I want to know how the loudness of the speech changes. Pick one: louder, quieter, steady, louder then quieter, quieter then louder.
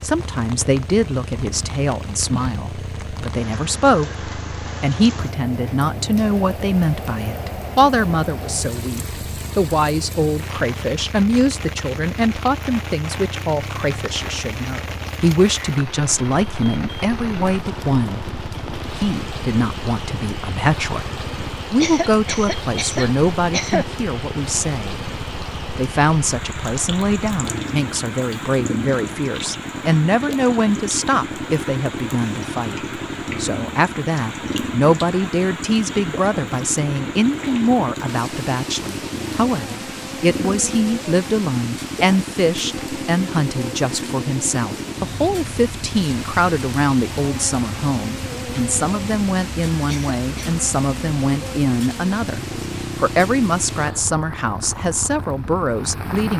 steady.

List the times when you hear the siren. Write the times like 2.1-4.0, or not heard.
not heard.